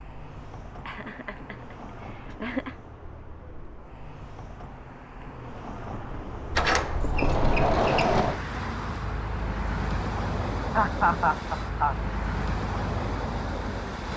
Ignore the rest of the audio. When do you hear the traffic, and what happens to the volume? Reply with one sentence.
The traffic can be heard from 0.0 to 14.1 s, getting louder.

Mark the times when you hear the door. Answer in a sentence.
You can hear the door from 6.5 to 8.4 s.